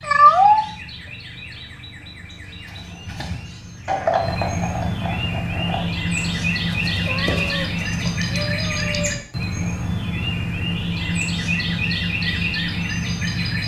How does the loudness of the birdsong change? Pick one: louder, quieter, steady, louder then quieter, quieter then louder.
louder.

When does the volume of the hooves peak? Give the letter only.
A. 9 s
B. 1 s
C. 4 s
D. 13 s
C.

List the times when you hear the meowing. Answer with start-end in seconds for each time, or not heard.
0.0-0.7, 6.9-9.2.